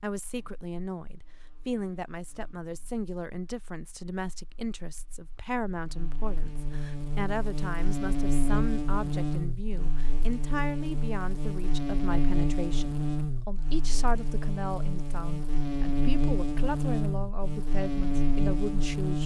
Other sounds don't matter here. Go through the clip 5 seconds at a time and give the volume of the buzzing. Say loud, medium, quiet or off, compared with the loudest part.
quiet, loud, loud, loud.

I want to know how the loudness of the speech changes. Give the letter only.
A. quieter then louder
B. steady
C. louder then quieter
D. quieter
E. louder
B.